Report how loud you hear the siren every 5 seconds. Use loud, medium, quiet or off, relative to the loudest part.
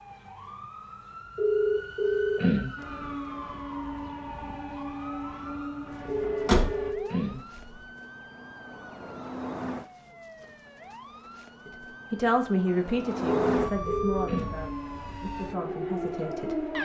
medium, medium, loud, loud.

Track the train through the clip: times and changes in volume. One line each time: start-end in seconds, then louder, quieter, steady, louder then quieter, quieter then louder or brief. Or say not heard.
2.8-7.0 steady
14.1-16.8 brief.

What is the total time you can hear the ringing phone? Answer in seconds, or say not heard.
4 s.